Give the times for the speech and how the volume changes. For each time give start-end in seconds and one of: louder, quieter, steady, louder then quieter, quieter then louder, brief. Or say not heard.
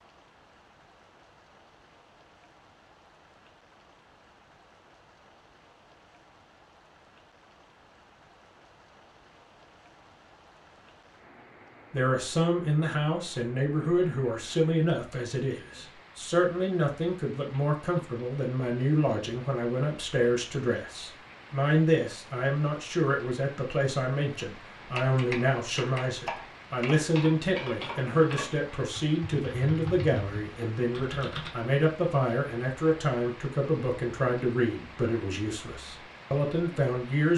11.9-37.3 steady.